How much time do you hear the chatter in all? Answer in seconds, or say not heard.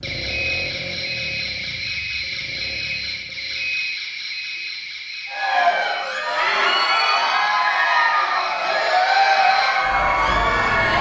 6 s.